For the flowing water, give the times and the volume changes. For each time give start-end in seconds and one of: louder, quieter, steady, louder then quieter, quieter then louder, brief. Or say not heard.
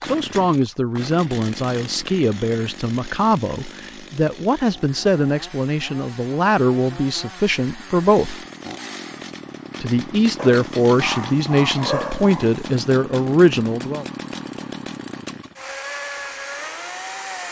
not heard.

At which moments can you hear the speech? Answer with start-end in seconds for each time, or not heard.
0.0-8.4, 9.8-14.1.